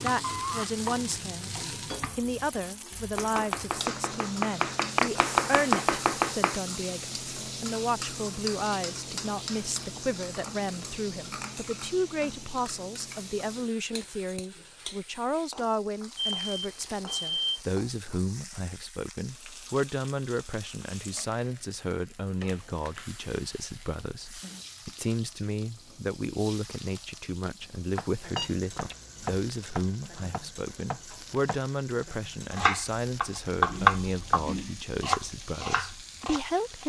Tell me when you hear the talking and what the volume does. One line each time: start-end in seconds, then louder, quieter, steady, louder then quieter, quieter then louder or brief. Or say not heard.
0.0-1.5 brief
2.1-36.8 steady.